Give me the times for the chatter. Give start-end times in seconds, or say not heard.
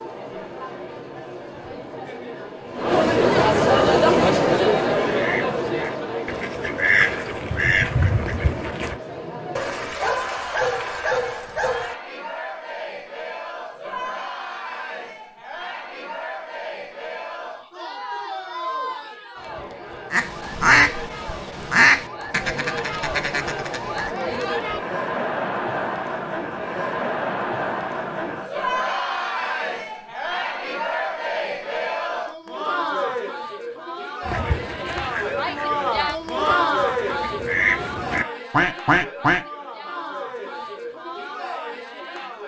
0.0-42.4.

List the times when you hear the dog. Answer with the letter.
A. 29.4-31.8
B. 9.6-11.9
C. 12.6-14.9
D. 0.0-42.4
B.